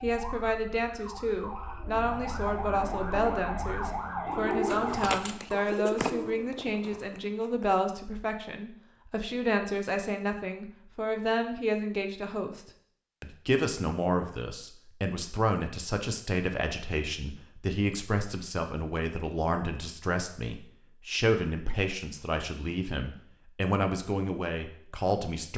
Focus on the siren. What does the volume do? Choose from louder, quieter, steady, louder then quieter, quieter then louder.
louder.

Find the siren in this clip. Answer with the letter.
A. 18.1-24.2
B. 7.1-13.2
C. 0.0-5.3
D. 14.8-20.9
C.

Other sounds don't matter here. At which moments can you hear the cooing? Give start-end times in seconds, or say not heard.
1.6-7.7.